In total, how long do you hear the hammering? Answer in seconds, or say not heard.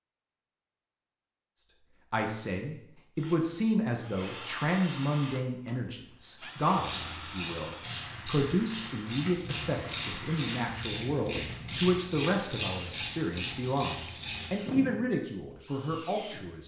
not heard.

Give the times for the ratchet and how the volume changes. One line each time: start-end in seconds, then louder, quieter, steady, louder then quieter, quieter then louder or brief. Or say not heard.
6.8-14.5 steady.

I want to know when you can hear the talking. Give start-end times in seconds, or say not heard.
2.1-16.6.